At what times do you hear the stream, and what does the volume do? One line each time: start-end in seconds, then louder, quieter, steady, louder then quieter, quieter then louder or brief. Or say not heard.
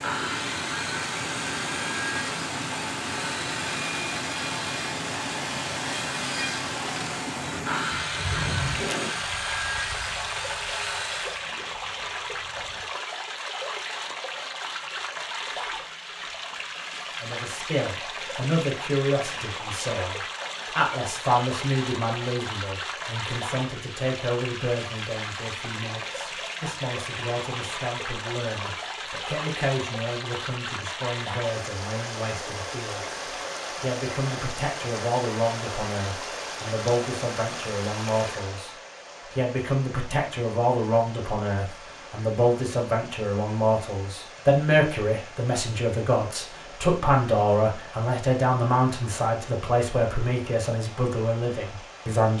0.0-52.3 quieter.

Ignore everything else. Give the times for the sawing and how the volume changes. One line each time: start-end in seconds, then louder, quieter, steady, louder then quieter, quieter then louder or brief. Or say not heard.
0.0-11.4 steady.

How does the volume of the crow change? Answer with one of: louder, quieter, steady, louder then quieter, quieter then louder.
quieter.